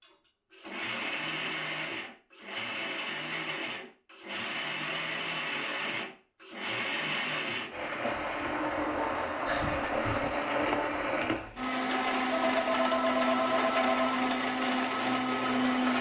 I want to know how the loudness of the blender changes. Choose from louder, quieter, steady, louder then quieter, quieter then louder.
louder.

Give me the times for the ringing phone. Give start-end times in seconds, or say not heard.
12.4-14.2.